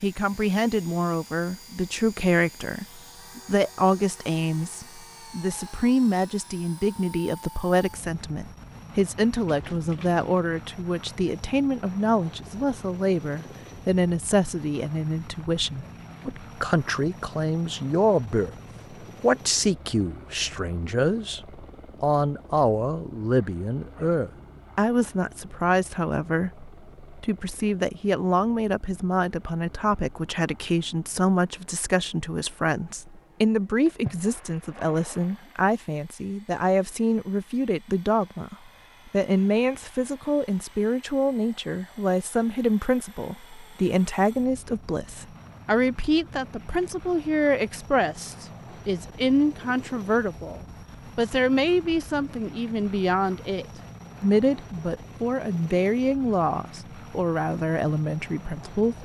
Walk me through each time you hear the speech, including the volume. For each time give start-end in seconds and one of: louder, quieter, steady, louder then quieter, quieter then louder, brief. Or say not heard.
0.0-59.0 steady.